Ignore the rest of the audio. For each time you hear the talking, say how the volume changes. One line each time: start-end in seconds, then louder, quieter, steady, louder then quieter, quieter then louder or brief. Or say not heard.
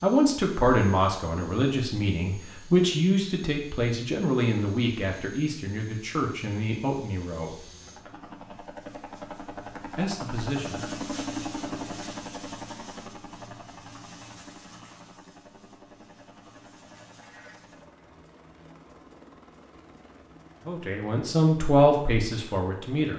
0.0-7.7 quieter
9.9-10.8 brief
20.6-23.1 brief.